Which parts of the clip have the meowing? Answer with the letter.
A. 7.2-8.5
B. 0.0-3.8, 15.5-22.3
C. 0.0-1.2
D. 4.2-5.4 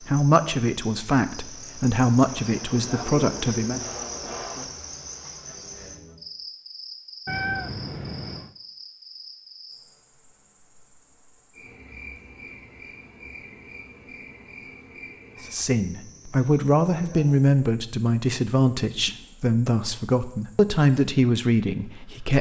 A.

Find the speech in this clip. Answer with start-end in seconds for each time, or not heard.
0.0-3.8, 15.5-22.3.